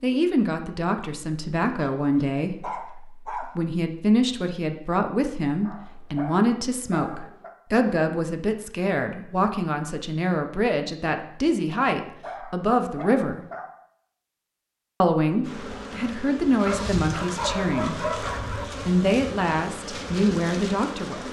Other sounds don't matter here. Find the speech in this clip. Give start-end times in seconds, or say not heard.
0.0-13.4, 15.0-18.2, 18.9-21.2.